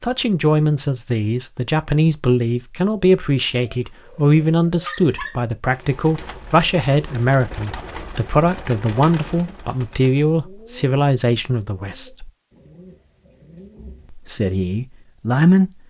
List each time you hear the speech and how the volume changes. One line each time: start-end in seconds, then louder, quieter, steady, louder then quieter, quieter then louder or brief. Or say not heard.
0.0-12.3 steady
14.1-15.7 brief.